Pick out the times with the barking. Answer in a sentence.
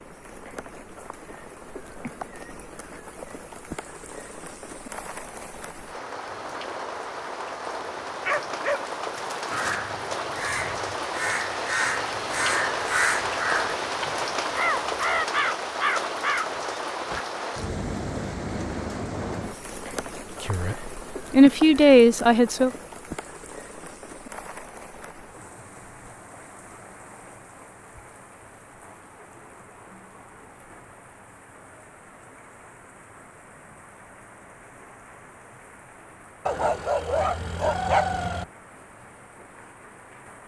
You can hear the barking from 7.8 to 9.8 s and from 36.5 to 38.5 s.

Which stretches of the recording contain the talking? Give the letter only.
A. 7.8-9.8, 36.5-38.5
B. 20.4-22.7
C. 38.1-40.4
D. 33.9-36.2
B.